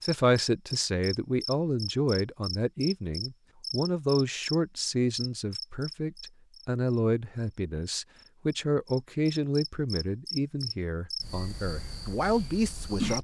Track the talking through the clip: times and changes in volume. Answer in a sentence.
You can hear the talking from 0.0 to 13.1 s, at a steady volume.